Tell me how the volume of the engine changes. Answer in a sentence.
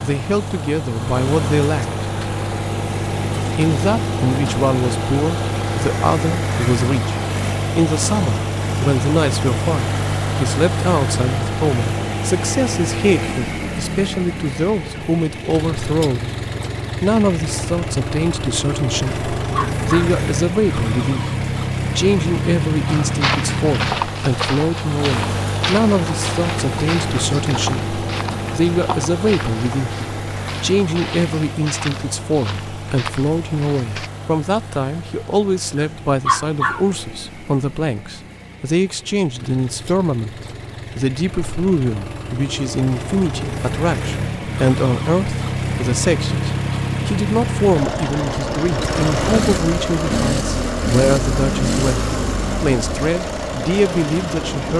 The loudness of the engine goes down, then up.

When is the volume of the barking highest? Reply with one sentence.
The volume of the barking peaks at 36 seconds.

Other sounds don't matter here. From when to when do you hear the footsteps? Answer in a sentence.
You can hear the footsteps from 22.9 to 34.1 s.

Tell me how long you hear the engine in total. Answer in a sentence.
You can hear the engine for 55 seconds altogether.